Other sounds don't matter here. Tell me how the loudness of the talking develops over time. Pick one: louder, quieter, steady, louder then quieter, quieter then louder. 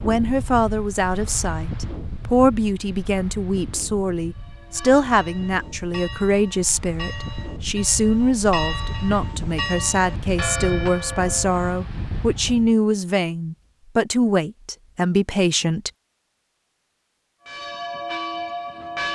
steady.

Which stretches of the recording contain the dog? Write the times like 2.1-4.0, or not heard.
not heard.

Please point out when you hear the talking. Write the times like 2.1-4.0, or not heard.
0.0-15.9.